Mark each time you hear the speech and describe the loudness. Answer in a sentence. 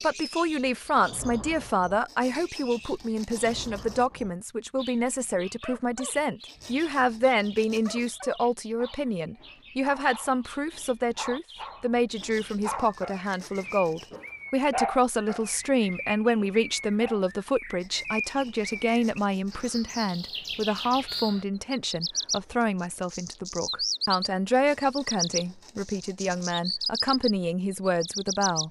The speech can be heard from 0.0 to 28.6 s, at a steady volume.